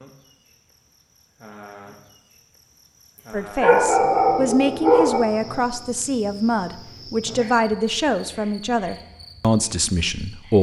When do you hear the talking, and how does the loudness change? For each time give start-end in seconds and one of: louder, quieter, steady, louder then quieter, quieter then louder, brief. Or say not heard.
3.3-10.5 steady.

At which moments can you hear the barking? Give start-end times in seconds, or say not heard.
3.6-5.2.